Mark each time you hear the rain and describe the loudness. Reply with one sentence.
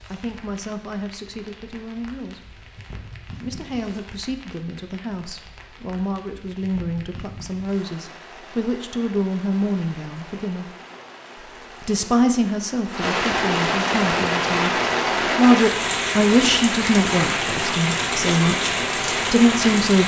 You can hear the rain from 0.0 to 20.0 s, getting louder.